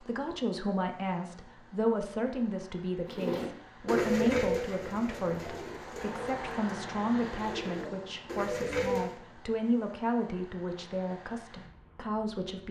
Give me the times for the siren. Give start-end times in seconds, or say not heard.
not heard.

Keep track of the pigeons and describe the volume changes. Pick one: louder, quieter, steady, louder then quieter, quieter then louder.
quieter then louder.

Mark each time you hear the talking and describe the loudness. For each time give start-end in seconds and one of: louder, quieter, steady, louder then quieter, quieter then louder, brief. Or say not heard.
0.0-12.6 steady.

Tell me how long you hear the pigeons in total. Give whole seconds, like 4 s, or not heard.
6 s.